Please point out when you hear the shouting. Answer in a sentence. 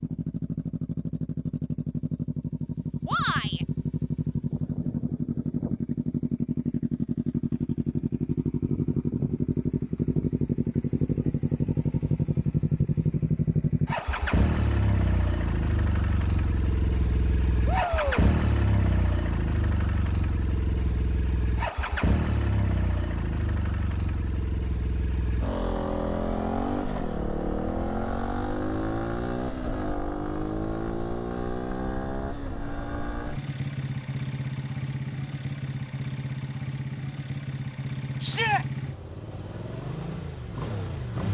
The shouting can be heard from 3.0 to 3.6 s, from 17.6 to 18.2 s and from 38.2 to 38.6 s.